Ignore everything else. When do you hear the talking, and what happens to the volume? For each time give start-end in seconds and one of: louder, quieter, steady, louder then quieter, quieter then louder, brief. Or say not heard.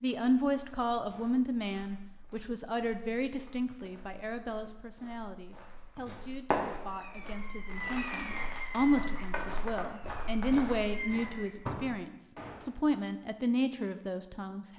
0.0-14.7 quieter then louder.